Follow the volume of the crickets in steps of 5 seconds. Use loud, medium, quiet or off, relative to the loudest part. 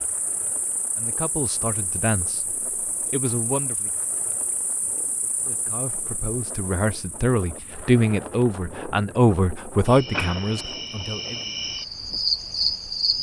quiet, quiet, loud.